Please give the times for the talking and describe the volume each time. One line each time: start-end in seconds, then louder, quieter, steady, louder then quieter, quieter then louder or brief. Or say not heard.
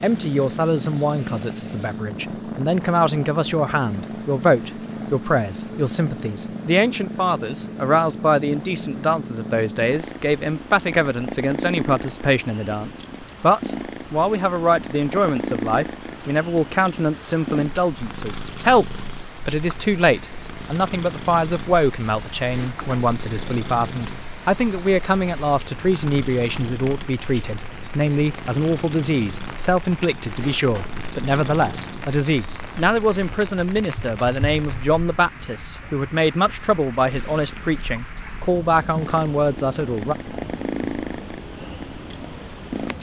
0.0-40.1 steady.